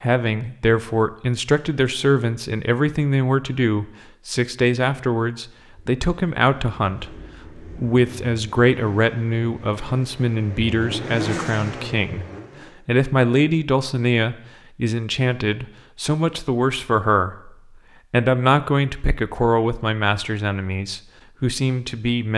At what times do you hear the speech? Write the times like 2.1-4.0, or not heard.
0.0-12.2, 12.8-22.3.